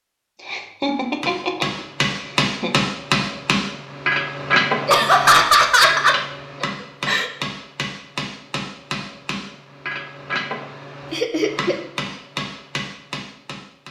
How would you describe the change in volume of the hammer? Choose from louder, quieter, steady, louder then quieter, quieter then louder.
quieter.